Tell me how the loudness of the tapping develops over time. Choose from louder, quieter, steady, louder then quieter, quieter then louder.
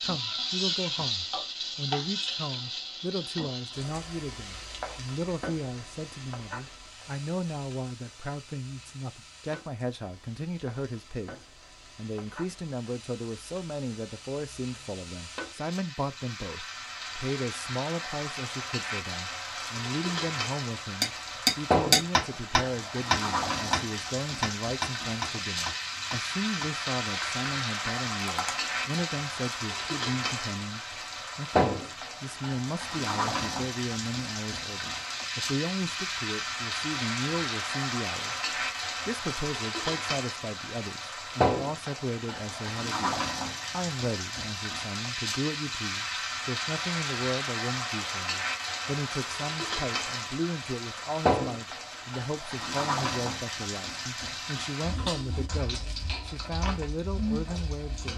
quieter.